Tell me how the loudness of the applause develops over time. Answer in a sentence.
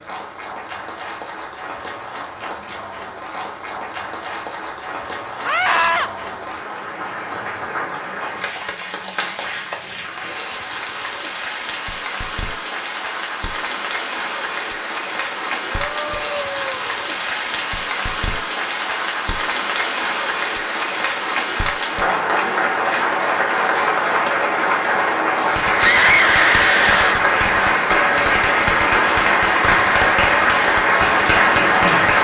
The volume of the applause goes up.